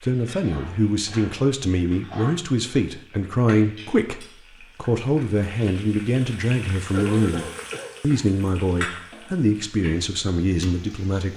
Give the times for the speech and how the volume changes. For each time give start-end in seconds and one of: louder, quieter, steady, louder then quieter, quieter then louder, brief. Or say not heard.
0.0-11.3 steady.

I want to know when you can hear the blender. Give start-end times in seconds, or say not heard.
not heard.